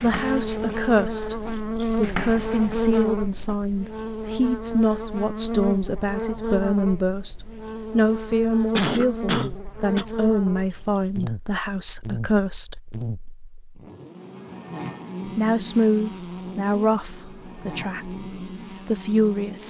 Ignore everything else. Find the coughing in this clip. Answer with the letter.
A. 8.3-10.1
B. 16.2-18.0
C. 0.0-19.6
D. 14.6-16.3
A.